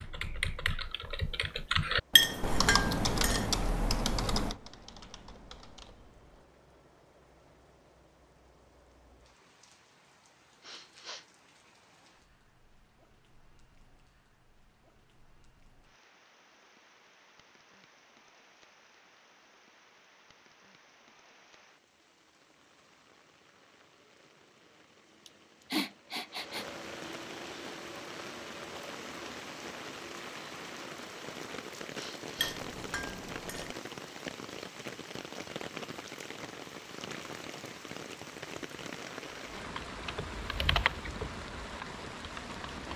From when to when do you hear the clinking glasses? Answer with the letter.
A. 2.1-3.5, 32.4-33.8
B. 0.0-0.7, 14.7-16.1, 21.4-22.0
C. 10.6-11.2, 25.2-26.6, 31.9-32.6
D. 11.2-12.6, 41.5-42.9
A.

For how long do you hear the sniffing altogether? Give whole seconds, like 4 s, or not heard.
3 s.